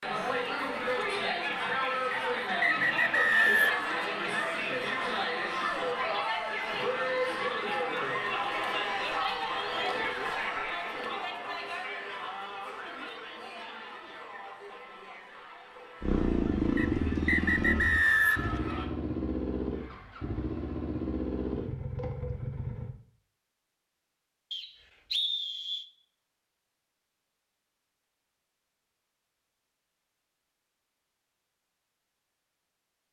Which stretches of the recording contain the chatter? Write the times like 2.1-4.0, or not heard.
0.0-18.9.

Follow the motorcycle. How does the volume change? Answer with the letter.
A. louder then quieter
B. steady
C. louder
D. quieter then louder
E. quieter
E.